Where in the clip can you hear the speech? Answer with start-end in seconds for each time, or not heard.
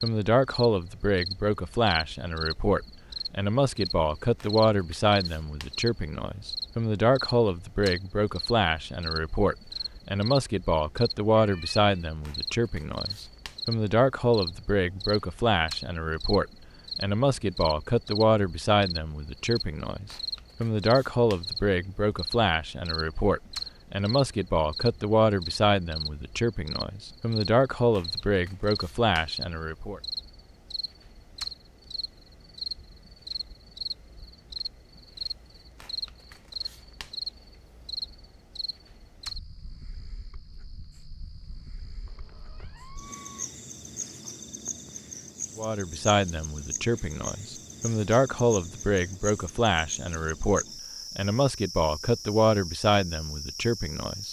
0.0-30.0, 45.5-54.2.